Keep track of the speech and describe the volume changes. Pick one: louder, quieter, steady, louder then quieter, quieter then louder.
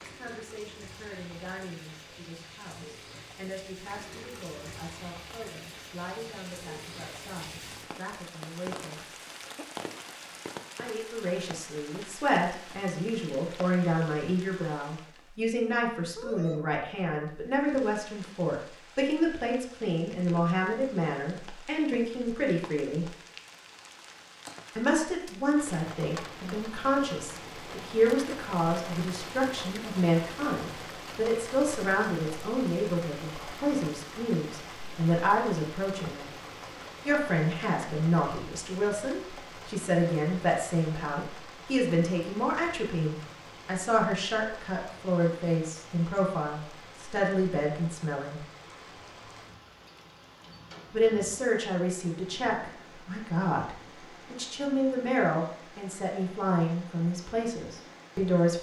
louder.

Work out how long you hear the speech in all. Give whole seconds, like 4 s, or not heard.
52 s.